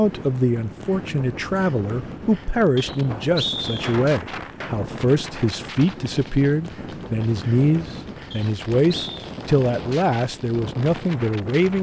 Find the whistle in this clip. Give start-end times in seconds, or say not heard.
2.8-4.0, 8.3-9.2.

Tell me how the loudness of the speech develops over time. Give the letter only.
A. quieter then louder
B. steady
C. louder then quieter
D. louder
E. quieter
B.